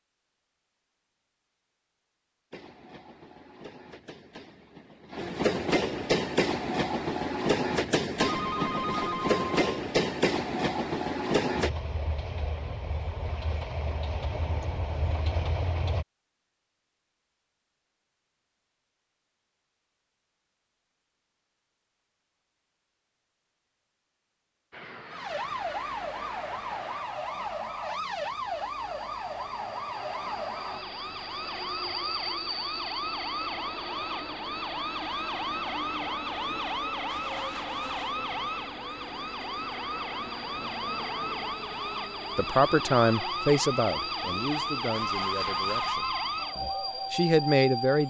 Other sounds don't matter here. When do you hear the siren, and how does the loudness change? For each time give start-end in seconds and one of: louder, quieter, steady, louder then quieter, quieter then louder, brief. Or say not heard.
25.1-48.0 steady.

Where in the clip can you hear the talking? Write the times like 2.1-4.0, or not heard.
42.4-48.0.